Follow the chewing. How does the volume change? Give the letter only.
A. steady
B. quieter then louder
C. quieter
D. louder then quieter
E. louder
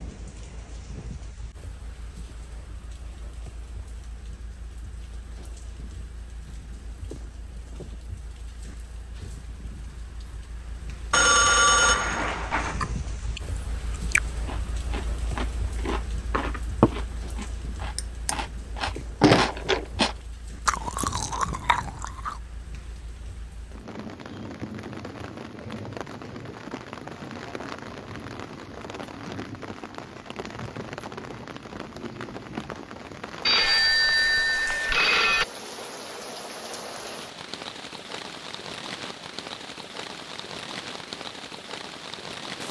D.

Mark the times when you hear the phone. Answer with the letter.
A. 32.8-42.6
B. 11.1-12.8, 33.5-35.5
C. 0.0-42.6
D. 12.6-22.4
B.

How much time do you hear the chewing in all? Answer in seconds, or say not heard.
10 s.